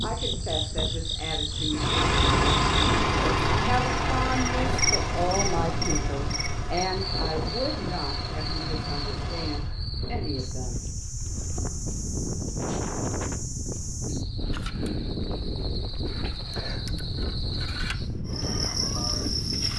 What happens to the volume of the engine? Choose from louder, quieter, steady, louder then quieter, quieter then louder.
quieter.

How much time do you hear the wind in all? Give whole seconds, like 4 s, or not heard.
20 s.